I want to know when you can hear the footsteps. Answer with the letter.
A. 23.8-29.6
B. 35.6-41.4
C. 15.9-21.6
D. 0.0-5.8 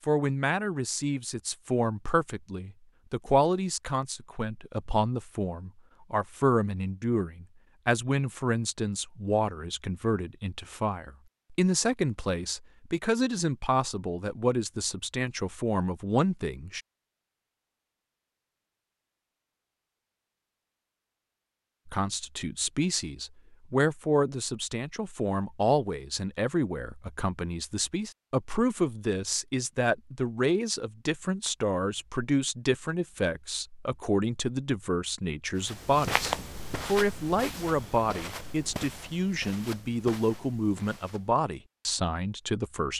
B.